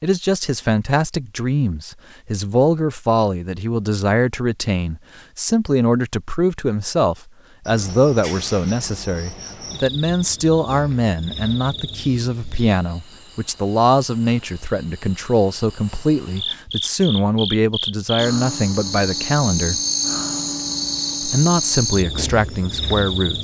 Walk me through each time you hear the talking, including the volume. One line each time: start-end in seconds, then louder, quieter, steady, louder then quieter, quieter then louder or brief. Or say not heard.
0.0-19.8 steady
21.2-23.3 brief.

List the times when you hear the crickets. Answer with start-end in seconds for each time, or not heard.
7.6-23.3.